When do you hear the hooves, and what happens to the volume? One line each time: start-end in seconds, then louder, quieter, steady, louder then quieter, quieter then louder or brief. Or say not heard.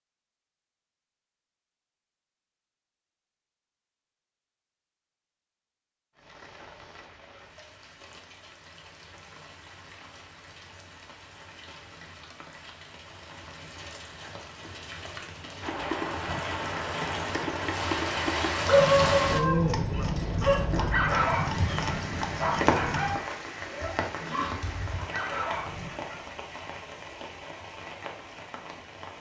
15.6-23.2 steady.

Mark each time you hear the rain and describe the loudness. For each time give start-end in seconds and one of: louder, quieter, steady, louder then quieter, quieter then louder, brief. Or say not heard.
6.2-29.1 louder then quieter.